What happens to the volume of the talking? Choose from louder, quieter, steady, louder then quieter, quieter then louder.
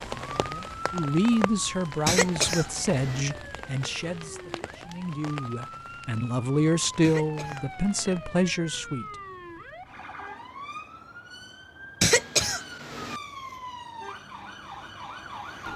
quieter then louder.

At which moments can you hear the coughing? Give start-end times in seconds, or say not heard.
2.0-3.2, 7.0-8.2, 12.0-13.2.